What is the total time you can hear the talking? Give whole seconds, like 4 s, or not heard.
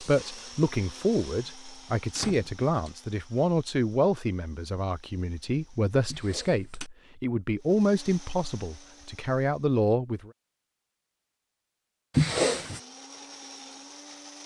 10 s.